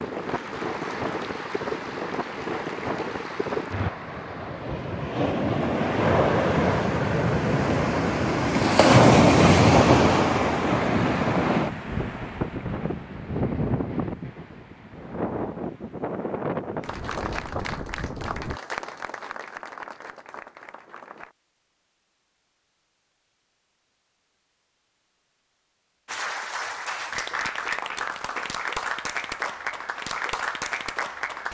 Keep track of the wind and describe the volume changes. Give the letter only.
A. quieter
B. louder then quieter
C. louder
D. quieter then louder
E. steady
B.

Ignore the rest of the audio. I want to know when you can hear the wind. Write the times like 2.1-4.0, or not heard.
0.0-18.6.